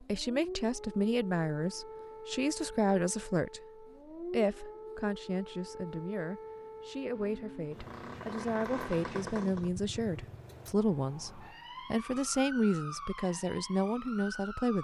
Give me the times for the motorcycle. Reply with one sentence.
The motorcycle can be heard from 7.0 to 10.5 s.